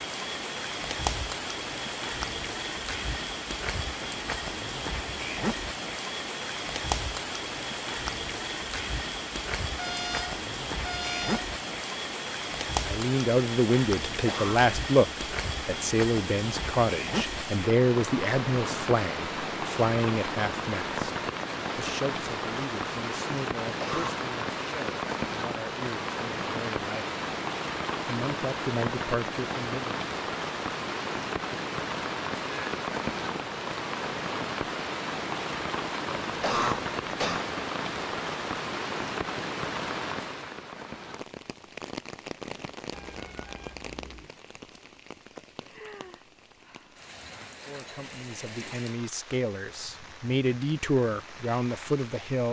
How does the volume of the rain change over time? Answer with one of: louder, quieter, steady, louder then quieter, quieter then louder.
quieter.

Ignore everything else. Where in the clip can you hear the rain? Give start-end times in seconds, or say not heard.
0.0-52.4.